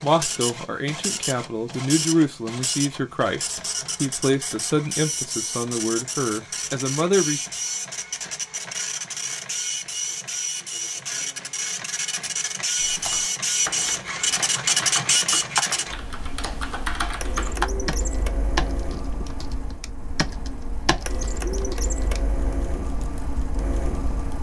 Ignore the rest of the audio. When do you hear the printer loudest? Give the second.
15 s.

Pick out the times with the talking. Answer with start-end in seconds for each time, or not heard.
0.0-7.4.